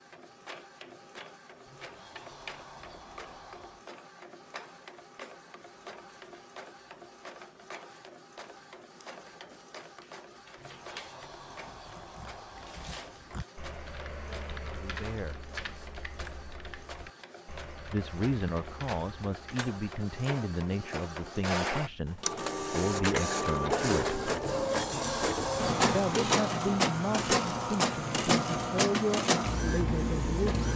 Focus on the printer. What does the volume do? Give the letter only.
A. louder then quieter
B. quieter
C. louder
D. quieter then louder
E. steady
C.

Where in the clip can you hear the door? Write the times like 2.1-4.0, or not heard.
1.6-3.9, 10.6-13.0, 24.4-26.0.